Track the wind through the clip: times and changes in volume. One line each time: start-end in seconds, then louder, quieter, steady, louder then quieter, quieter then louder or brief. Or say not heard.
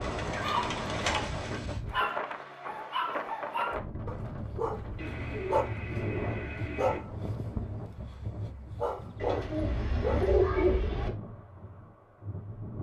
0.0-12.7 quieter.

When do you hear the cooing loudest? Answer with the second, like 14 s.
11 s.